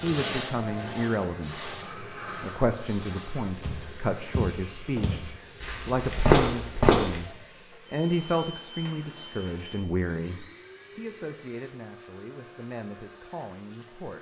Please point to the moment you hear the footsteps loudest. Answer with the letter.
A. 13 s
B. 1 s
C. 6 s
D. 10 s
C.